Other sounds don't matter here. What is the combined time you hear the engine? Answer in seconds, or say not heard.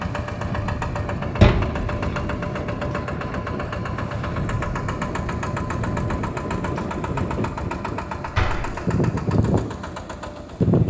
11 s.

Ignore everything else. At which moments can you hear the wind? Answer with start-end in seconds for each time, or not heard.
0.0-10.8.